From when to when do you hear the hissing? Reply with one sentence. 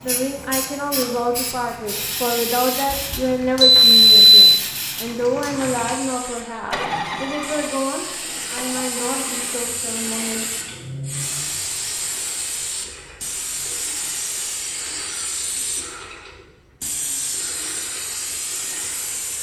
The hissing can be heard from 0.0 to 19.3 s.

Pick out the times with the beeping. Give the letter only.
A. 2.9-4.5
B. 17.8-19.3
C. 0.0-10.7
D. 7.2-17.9
A.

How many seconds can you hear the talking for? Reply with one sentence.
The talking can be heard for 11 seconds in total.